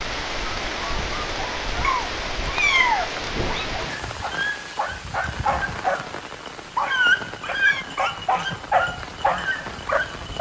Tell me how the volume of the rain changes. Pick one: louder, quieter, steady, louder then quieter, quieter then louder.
quieter.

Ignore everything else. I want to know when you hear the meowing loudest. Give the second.
3 s.